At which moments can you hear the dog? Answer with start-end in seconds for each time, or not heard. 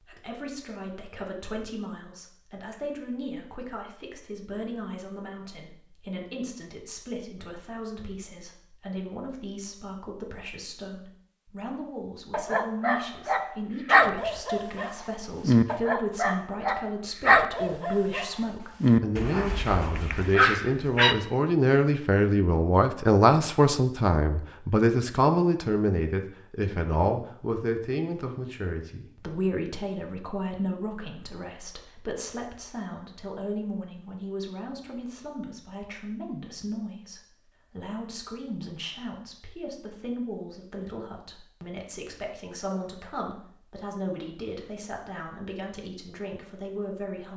12.3-21.1.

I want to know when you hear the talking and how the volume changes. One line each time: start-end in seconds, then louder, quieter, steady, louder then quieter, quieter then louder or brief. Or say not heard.
0.0-47.3 louder then quieter.